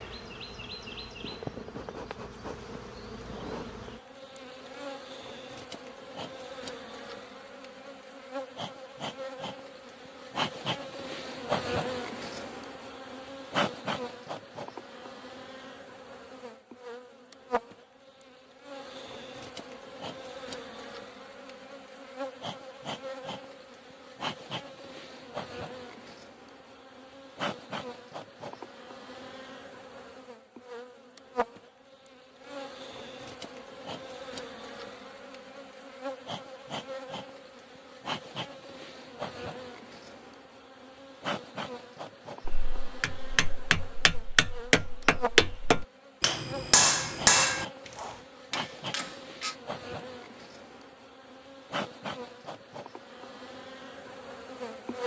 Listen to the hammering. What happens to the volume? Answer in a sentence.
The loudness of the hammering goes up, then down.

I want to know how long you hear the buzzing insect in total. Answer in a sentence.
You can hear the buzzing insect for 55 seconds altogether.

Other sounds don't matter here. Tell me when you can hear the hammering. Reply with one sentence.
The hammering can be heard from 42.5 to 49.5 s.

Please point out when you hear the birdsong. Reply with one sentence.
The birdsong can't be heard in this clip.